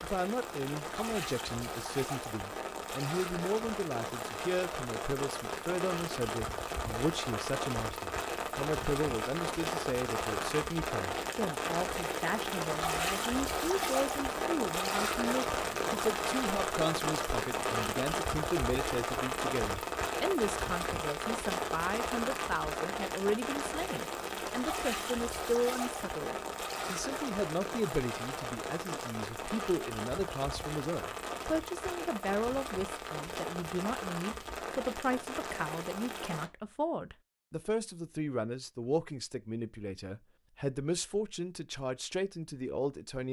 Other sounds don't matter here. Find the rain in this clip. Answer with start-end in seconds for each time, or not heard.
0.0-36.5.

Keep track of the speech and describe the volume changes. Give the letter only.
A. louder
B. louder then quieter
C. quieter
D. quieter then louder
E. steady
E.